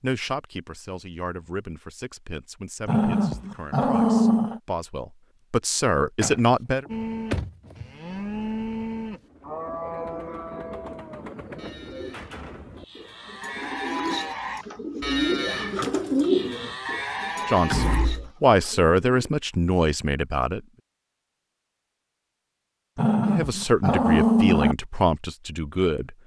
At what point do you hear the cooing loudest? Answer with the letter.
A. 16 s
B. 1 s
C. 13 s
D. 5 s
A.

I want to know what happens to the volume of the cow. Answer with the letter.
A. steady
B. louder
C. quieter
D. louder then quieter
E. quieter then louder
E.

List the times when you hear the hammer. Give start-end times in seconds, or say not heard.
not heard.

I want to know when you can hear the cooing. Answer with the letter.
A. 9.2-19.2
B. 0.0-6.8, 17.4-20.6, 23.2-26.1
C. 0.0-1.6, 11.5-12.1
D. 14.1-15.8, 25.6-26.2
A.